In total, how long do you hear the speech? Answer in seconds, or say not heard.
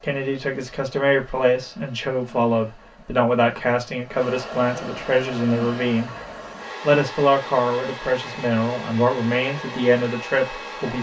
10 s.